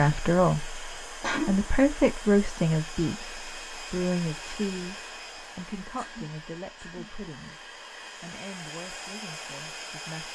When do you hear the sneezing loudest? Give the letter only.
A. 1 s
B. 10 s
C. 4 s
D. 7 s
A.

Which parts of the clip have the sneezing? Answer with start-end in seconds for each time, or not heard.
0.7-1.8, 6.0-7.2.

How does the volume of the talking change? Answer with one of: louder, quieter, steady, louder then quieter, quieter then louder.
quieter.